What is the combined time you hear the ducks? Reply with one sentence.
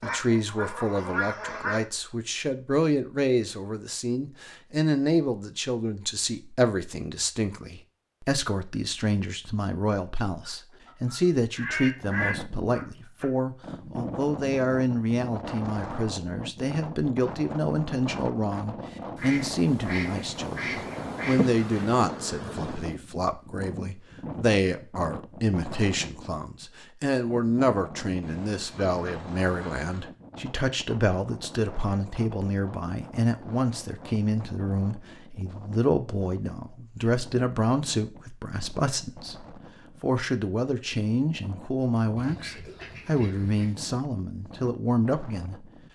You can hear the ducks for 11 seconds altogether.